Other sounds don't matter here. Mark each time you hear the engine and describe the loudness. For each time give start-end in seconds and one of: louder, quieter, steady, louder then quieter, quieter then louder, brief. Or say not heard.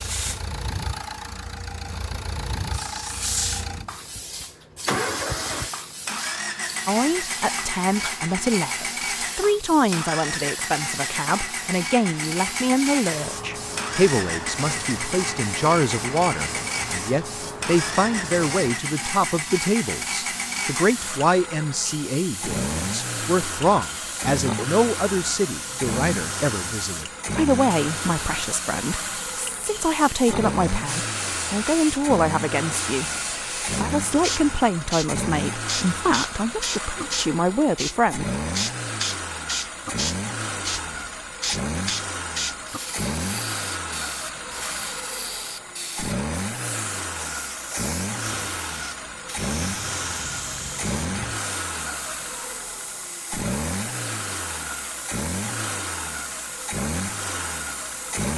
0.0-58.3 steady.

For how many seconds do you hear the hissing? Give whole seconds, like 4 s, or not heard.
58 s.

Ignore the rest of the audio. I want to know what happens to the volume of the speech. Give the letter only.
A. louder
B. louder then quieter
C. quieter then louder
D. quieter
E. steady
E.